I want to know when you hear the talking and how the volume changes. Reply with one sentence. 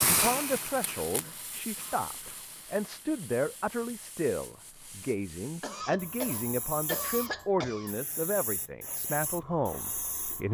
The talking can be heard from 0.0 to 10.4 s, at a steady volume.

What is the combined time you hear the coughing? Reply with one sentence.
The coughing can be heard for 4 seconds in total.